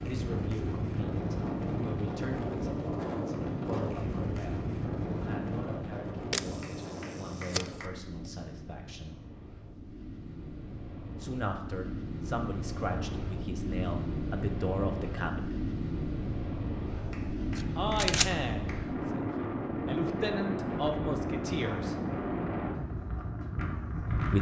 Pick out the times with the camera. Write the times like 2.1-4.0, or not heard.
6.3-7.8, 16.9-18.4.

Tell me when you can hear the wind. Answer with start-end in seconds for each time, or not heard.
0.0-24.3.